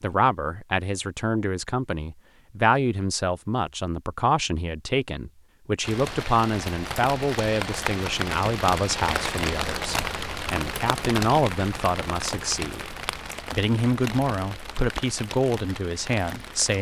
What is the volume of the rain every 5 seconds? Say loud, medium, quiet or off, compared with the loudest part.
off, loud, loud, medium.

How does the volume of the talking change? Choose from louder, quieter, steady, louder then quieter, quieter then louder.
steady.